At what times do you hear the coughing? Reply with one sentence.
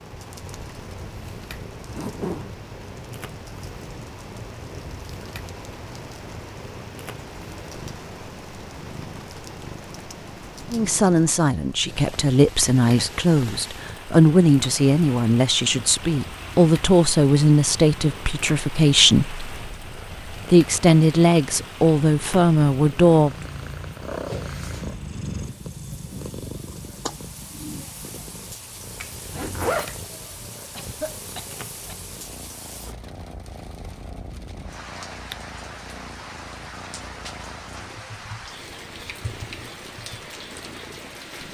The coughing can be heard from 30.7 to 32.0 s.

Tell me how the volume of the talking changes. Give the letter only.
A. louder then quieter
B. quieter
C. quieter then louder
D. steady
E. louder
D.